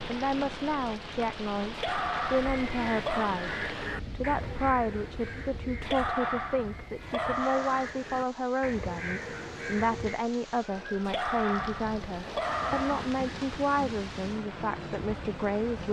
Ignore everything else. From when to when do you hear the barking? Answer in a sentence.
The barking can be heard from 1.7 to 3.4 s, from 5.8 to 7.9 s and from 11.1 to 13.2 s.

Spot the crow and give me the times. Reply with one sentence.
You can hear the crow from 2.2 to 10.2 s.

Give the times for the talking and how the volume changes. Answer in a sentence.
The talking can be heard from 0.1 to 15.8 s, at a steady volume.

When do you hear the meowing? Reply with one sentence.
You can't hear the meowing here.